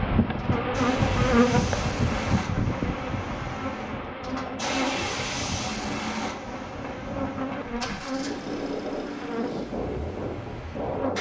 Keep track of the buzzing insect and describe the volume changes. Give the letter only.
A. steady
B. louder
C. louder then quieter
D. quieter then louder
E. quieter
E.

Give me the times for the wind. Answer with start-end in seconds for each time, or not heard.
0.1-11.1.